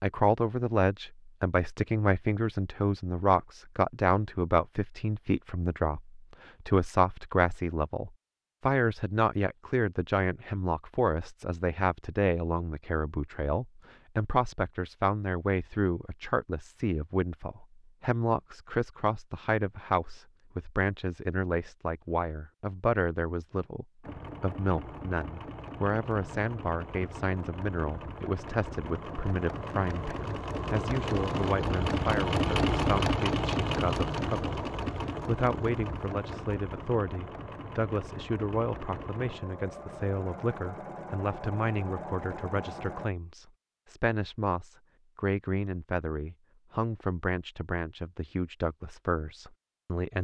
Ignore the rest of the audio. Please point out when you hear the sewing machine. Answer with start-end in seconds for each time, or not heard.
24.0-43.1.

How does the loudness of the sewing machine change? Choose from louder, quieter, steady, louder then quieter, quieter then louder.
louder then quieter.